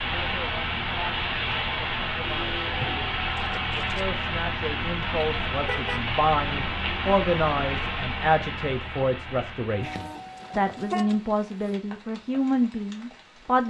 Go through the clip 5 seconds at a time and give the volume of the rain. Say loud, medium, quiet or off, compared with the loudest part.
loud, loud, quiet.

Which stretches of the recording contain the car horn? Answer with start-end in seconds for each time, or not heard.
2.2-3.0, 5.6-6.0, 9.8-11.8.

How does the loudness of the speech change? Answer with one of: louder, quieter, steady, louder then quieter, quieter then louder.
louder.